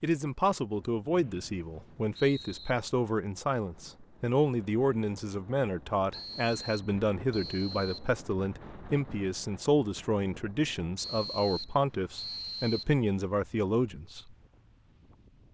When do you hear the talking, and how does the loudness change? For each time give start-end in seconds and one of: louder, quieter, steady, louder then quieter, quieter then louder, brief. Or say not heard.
0.0-14.3 steady.